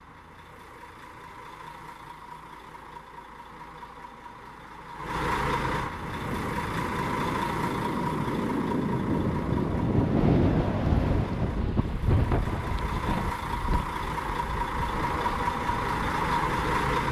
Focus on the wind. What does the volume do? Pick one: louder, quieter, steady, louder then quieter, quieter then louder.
louder then quieter.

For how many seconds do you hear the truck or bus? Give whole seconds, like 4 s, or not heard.
17 s.